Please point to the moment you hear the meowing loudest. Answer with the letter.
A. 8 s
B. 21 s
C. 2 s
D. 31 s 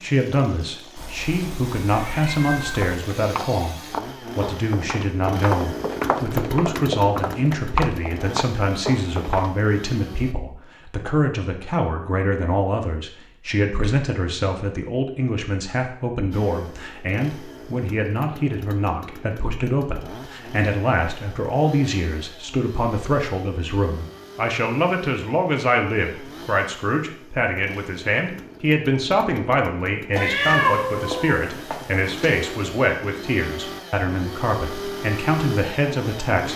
D.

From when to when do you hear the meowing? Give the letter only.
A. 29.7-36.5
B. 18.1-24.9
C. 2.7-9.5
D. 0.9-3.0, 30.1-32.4
D.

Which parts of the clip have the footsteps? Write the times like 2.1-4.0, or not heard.
2.7-9.5.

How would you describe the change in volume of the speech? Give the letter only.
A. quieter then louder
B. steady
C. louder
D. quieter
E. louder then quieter
B.